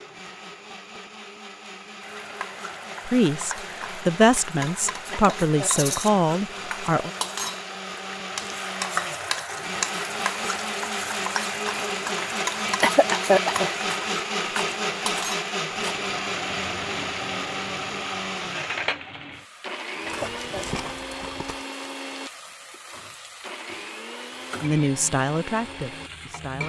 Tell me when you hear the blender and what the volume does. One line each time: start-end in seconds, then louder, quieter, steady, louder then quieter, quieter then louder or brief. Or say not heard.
0.0-26.6 louder then quieter.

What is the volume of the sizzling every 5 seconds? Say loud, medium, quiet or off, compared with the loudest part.
medium, loud, loud, loud, medium, medium.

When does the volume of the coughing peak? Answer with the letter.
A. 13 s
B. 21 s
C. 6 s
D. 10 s
A.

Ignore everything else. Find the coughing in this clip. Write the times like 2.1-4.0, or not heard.
5.1-6.0, 12.8-13.7, 20.1-20.8.